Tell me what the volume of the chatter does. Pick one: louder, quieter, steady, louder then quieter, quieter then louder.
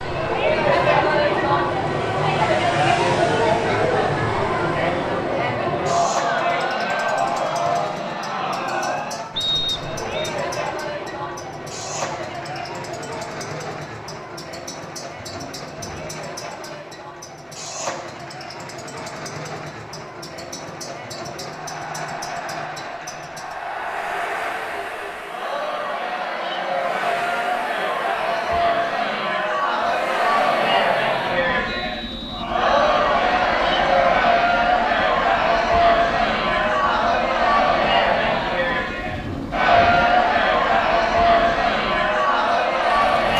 quieter then louder.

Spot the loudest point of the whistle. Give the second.
10 s.